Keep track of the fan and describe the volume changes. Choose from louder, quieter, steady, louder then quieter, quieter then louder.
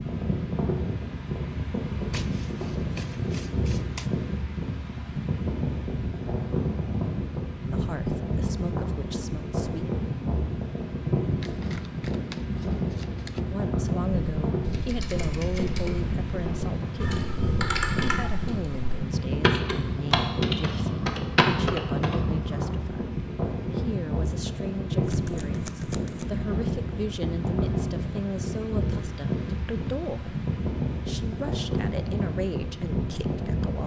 steady.